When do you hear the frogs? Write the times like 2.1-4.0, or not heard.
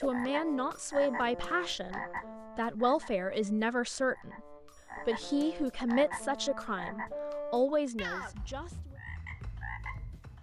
0.0-10.3.